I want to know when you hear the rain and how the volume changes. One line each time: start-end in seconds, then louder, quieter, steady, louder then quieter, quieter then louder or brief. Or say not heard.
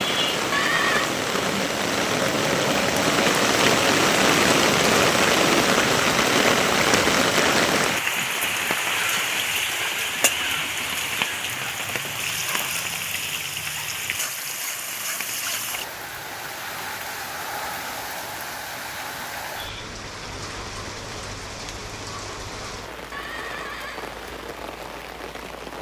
0.0-25.7 quieter.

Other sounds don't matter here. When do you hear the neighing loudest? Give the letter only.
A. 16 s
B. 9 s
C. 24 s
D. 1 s
D.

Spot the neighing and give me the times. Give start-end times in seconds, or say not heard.
0.5-1.1, 23.1-24.1.